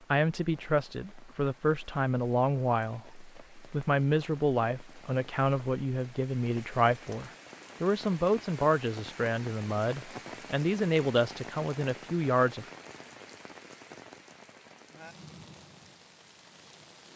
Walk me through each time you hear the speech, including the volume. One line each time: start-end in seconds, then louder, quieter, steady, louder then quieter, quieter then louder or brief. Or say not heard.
0.1-12.7 steady.